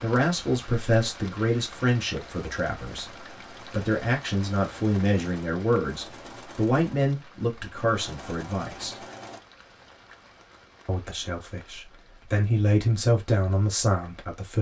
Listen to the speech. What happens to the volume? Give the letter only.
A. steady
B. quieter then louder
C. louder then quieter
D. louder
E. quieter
B.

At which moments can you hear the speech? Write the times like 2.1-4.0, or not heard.
0.0-9.0, 10.8-14.5.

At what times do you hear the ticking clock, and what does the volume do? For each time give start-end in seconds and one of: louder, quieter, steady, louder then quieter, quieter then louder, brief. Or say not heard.
not heard.